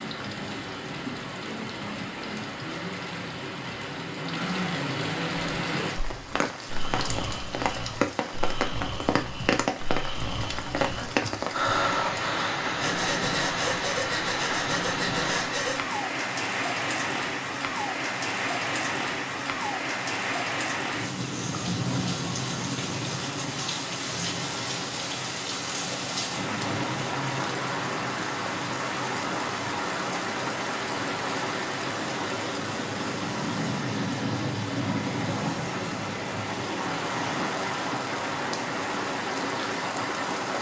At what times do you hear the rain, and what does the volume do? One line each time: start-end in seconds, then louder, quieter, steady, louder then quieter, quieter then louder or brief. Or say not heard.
0.0-40.5 steady.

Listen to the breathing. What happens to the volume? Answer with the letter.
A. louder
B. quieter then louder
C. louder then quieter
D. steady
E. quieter
A.